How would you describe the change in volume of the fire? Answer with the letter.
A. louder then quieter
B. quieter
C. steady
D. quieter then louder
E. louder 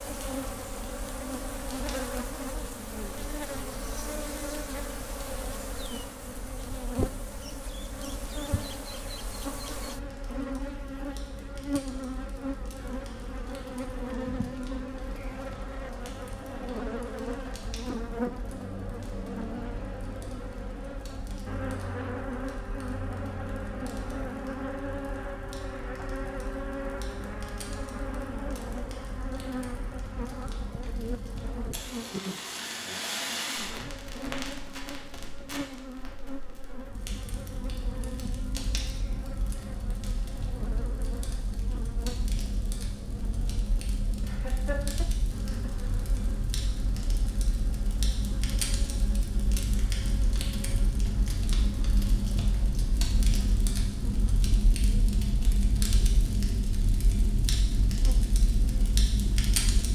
E.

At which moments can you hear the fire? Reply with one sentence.
You can hear the fire from 0.0 to 59.8 s.